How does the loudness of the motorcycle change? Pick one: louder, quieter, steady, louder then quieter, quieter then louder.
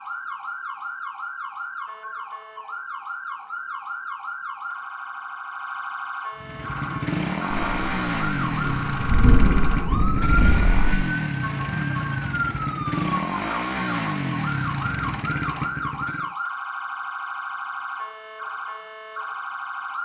steady.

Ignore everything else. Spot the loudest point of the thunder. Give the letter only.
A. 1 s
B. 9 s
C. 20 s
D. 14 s
B.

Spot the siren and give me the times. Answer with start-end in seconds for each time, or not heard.
0.0-20.0.